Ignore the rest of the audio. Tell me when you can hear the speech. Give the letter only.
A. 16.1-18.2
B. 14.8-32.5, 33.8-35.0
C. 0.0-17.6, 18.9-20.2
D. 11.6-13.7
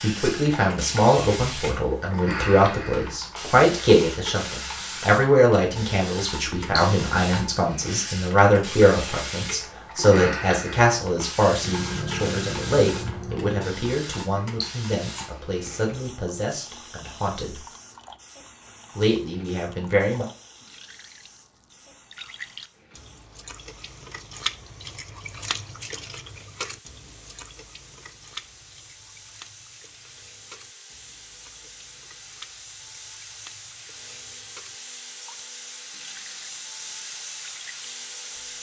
C.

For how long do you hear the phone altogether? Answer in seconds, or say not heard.
2 s.